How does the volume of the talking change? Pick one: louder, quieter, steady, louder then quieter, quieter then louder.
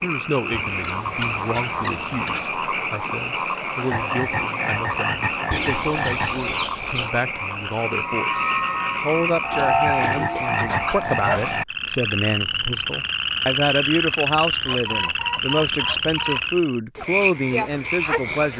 louder.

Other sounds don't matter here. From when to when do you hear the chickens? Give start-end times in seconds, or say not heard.
0.5-2.5, 5.5-7.1, 9.8-11.5, 14.7-16.7.